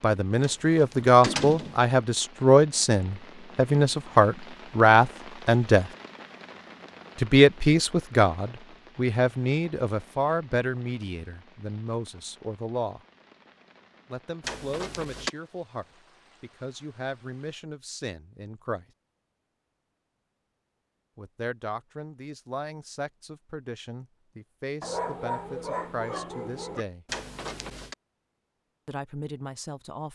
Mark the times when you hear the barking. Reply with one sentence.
The barking can be heard from 24.8 to 26.9 s.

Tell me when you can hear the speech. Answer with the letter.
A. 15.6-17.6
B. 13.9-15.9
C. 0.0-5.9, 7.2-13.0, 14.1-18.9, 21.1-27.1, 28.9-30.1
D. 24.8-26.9
C.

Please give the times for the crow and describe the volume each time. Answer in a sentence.
You can't hear the crow here.